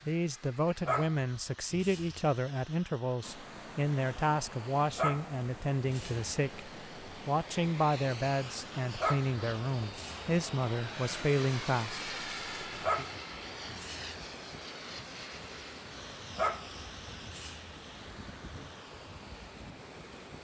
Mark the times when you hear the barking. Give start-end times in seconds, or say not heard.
0.8-2.3, 4.9-6.3, 8.9-10.3, 12.8-14.1, 16.3-17.8.